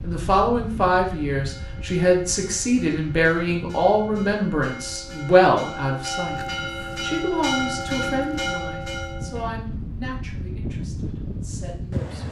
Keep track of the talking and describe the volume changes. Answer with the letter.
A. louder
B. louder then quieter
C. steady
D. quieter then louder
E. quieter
E.